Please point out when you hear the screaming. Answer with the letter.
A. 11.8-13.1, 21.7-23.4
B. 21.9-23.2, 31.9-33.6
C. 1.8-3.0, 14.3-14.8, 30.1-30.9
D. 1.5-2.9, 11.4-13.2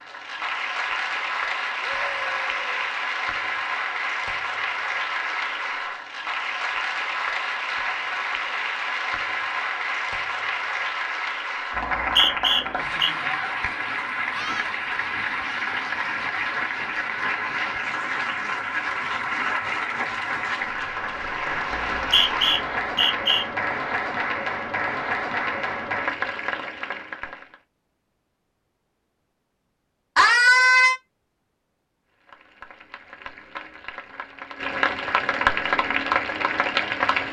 C.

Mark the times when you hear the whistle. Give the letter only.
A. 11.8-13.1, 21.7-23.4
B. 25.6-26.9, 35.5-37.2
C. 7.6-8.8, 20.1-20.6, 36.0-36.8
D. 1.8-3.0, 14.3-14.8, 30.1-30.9
A.